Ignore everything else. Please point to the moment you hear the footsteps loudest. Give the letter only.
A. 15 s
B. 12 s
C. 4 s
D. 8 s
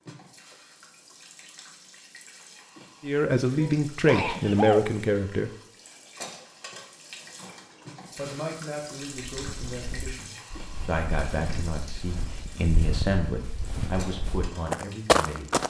A.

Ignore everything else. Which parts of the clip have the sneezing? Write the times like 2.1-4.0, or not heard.
3.5-4.9.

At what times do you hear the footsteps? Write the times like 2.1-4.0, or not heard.
9.3-15.6.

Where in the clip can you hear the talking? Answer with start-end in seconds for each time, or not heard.
3.0-5.5, 8.2-15.5.